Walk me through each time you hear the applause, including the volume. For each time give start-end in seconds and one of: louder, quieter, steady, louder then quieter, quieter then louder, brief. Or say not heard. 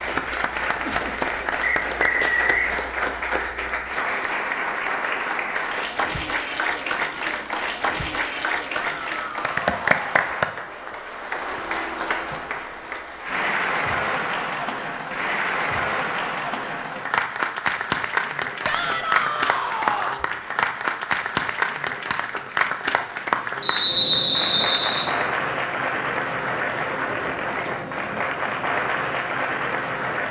0.0-30.2 steady.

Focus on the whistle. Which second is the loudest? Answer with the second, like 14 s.
24 s.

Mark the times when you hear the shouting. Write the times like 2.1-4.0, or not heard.
8.8-10.3, 18.6-20.2.